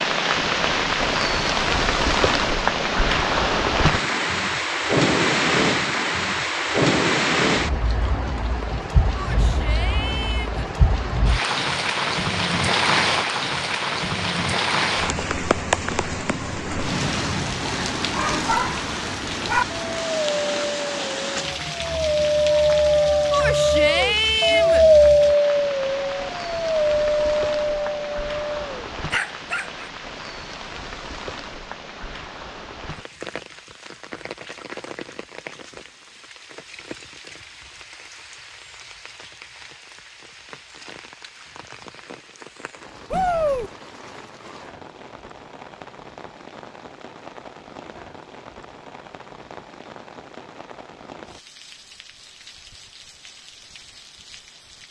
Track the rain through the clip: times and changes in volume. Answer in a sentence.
The rain can be heard from 0.0 to 54.8 s, getting quieter.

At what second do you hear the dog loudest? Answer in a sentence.
The loudest moment of the dog is at 25 seconds.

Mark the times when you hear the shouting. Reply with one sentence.
You can hear the shouting from 9.2 to 10.7 s, from 23.3 to 24.9 s and from 43.1 to 43.7 s.